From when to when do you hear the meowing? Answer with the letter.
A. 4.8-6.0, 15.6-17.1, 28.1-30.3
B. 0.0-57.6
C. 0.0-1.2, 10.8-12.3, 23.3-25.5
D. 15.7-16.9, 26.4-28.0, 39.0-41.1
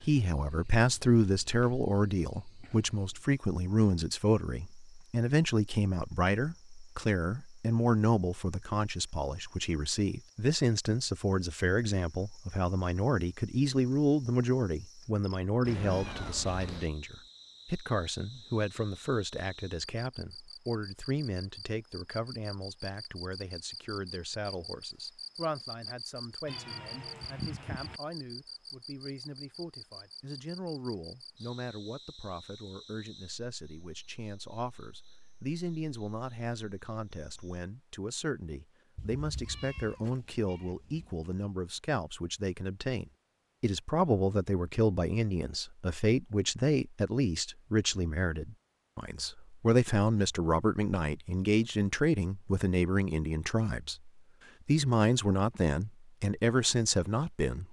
D.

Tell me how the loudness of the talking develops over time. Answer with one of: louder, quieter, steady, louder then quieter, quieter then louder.
quieter then louder.